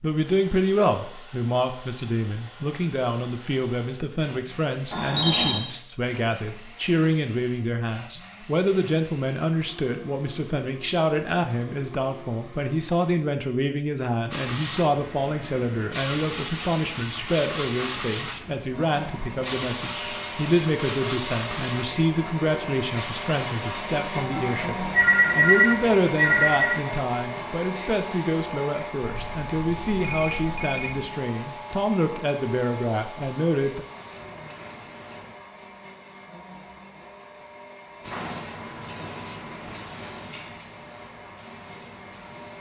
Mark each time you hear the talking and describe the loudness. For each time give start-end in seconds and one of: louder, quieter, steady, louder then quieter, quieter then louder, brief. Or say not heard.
0.0-33.9 steady.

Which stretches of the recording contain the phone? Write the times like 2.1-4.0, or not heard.
4.9-5.6, 24.2-26.8, 29.0-31.1.